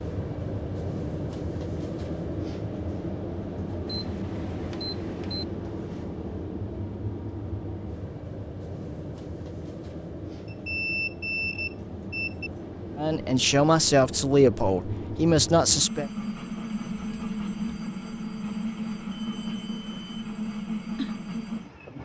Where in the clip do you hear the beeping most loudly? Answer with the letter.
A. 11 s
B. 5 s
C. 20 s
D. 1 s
A.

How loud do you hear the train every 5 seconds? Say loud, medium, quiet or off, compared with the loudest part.
loud, loud, medium, loud, loud.